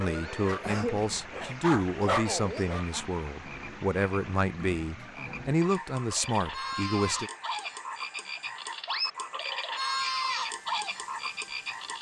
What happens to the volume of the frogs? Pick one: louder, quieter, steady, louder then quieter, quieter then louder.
quieter then louder.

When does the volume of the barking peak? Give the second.
2 s.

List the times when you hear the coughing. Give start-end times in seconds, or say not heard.
0.6-1.6.